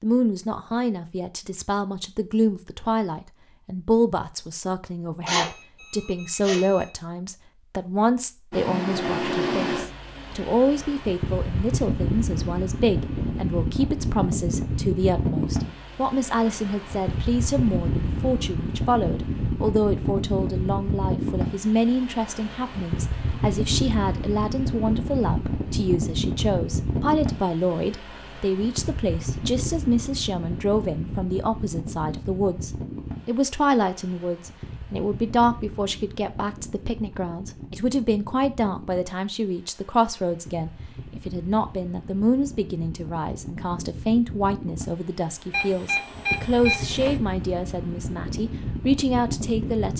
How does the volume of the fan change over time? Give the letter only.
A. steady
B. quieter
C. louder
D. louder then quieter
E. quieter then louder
E.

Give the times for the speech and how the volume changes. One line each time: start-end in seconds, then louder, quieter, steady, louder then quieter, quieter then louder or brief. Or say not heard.
0.0-49.9 steady.